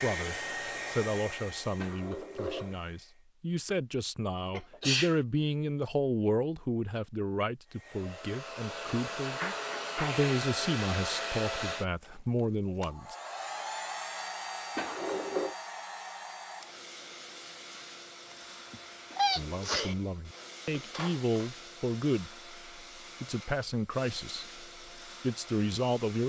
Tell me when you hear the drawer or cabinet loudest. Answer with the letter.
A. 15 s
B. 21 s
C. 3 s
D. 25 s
A.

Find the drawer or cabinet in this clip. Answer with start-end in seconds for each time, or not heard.
1.8-2.8, 14.8-15.6, 19.1-21.4.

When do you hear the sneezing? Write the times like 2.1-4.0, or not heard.
4.5-5.2, 9.2-10.3, 18.7-19.9.